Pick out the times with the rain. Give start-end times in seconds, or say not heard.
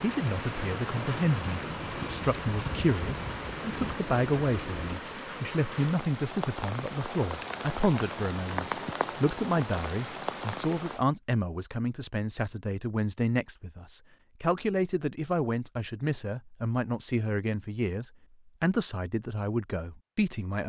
0.0-11.1.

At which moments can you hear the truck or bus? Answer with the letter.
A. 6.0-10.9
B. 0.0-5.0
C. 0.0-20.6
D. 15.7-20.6
B.